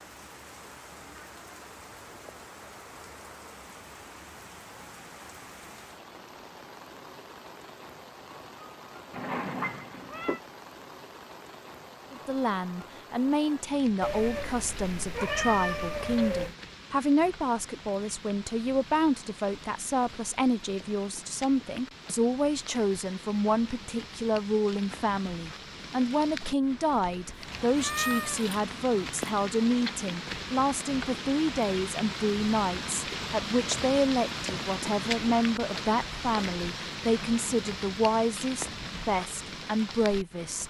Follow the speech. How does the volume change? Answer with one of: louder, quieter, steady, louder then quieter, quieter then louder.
steady.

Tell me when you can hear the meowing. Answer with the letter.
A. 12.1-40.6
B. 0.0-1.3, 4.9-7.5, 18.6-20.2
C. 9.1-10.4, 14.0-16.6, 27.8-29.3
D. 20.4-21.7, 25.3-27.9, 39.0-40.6
C.